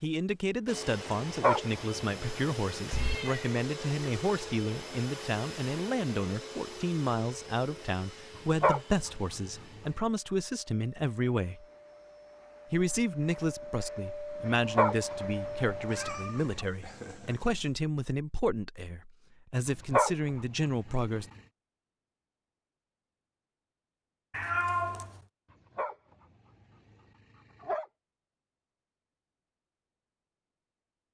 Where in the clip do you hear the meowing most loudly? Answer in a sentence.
The volume of the meowing peaks at 25 seconds.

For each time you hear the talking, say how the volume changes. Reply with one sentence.
The talking can be heard from 0.0 to 11.7 s, at a steady volume; and from 12.7 to 21.2 s, at a steady volume.